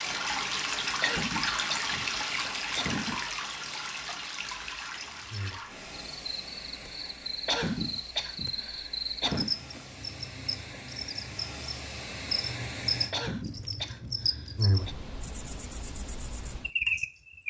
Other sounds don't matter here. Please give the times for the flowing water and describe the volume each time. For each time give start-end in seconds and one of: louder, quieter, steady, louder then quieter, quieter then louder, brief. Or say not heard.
0.0-13.2 quieter then louder.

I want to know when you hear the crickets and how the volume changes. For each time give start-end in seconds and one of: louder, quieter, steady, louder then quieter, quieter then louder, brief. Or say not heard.
5.1-17.4 louder.